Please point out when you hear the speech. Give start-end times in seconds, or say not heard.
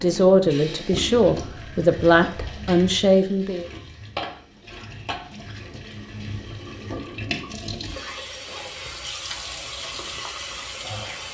0.0-3.6.